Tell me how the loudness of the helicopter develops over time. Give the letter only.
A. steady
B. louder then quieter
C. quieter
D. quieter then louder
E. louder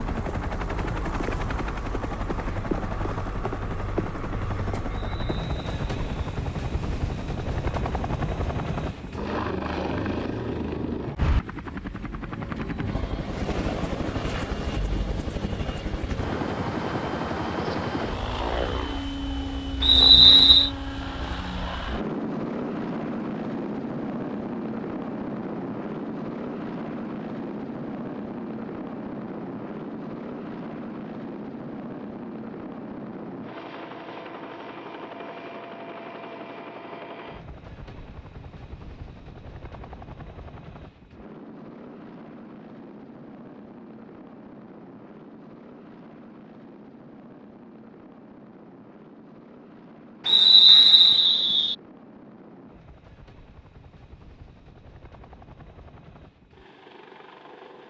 C.